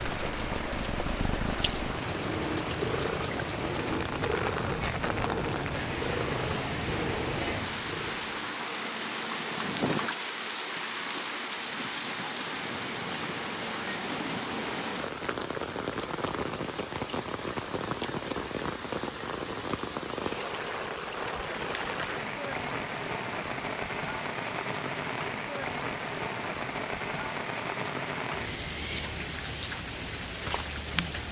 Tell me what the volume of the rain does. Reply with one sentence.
The loudness of the rain stays about the same.